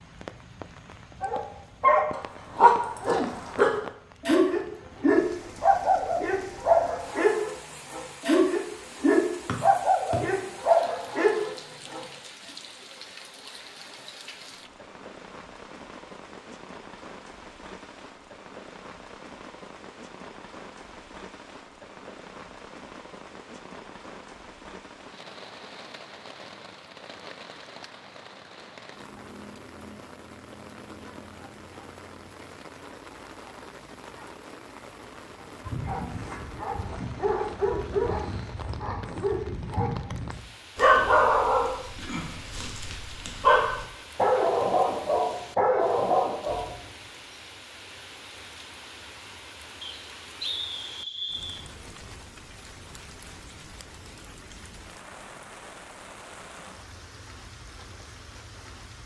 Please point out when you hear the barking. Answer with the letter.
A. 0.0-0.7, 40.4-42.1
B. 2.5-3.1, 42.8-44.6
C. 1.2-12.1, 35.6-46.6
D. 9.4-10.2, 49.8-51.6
C.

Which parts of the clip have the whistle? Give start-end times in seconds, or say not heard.
9.4-10.2, 49.8-51.6.